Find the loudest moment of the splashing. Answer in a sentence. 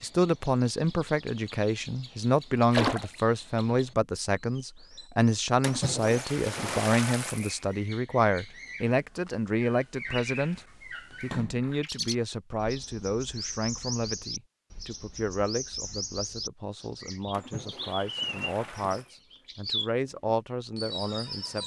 The volume of the splashing peaks at 3 seconds.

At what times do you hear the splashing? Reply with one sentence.
The splashing can be heard from 2.7 to 3.1 s, from 5.6 to 7.6 s, from 11.2 to 12.1 s and from 17.3 to 19.1 s.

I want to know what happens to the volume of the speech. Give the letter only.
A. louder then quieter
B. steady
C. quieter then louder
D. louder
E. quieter
E.